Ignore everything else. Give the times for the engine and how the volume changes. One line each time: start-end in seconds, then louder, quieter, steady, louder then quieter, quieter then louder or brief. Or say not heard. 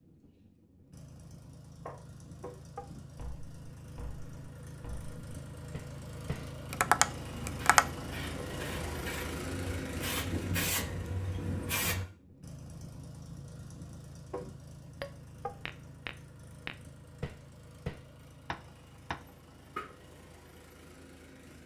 0.0-21.6 louder then quieter.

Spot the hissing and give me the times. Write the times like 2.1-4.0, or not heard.
7.5-12.1.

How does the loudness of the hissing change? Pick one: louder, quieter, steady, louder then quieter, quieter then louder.
louder then quieter.